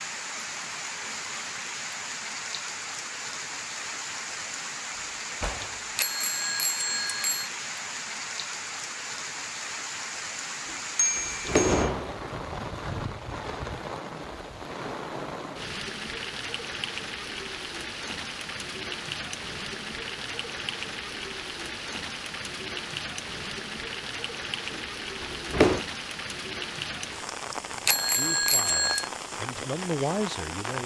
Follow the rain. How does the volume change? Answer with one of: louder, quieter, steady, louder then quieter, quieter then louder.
steady.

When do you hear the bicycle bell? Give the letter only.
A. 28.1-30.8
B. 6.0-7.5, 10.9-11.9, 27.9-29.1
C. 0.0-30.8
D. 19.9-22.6
B.